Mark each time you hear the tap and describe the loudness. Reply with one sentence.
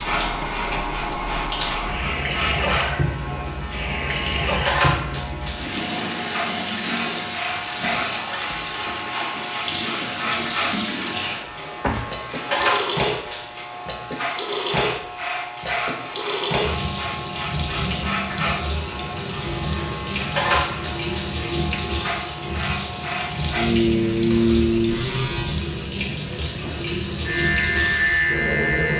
You can hear the tap from 0.0 to 28.9 s, at a steady volume.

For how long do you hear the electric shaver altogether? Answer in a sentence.
The electric shaver can be heard for 29 seconds in total.